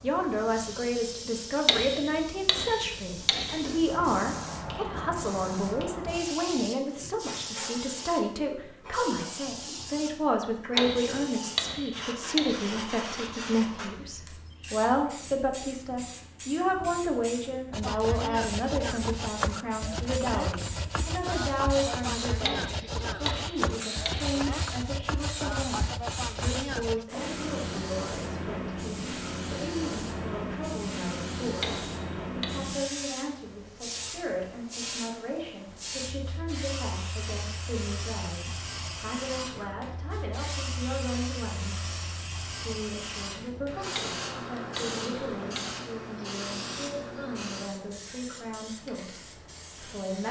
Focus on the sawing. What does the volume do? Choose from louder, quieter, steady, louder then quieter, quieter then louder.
steady.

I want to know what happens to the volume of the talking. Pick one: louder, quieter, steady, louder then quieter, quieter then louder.
quieter.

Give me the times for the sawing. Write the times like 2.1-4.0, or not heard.
17.7-27.1.